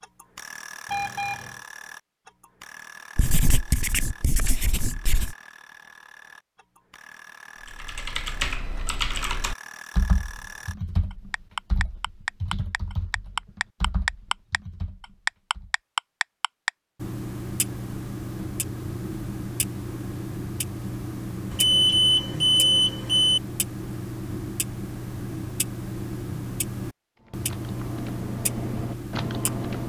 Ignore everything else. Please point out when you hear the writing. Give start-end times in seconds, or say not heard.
3.1-5.3.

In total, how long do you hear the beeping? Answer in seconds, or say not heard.
3 s.